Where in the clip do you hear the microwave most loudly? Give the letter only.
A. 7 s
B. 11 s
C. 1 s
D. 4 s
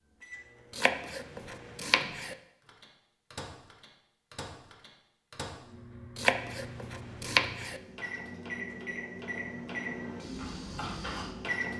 B.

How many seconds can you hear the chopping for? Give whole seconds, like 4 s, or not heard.
3 s.